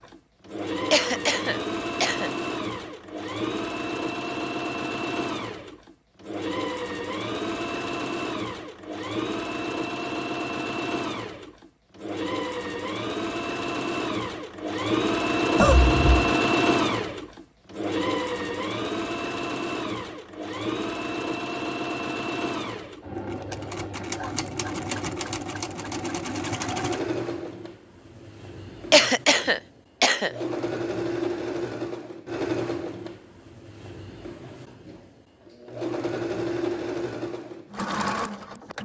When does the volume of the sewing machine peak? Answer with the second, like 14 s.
16 s.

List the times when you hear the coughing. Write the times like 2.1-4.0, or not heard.
0.9-2.3, 15.6-16.4, 28.9-30.3.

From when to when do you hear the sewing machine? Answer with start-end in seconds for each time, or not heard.
0.0-38.8.